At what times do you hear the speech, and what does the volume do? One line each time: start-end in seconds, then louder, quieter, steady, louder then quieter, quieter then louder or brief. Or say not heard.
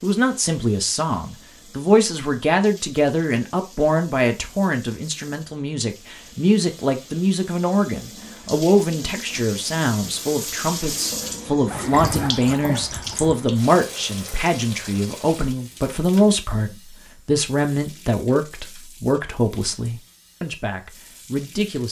0.0-21.8 steady.